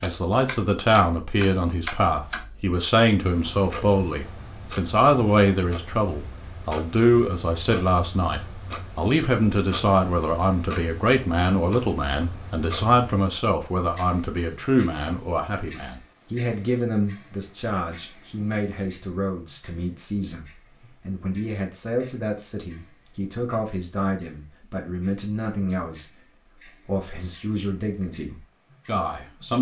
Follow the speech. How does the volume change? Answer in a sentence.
The volume of the speech goes down.